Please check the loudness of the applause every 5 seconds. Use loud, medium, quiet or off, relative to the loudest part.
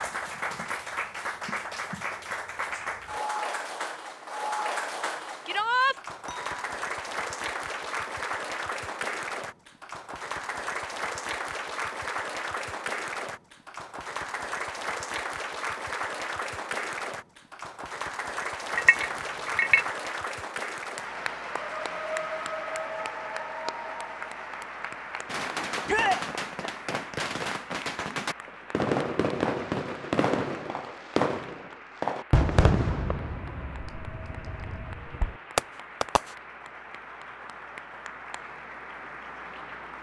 loud, loud, loud, loud, loud, medium, quiet, medium.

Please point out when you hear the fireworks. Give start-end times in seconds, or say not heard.
25.2-36.4.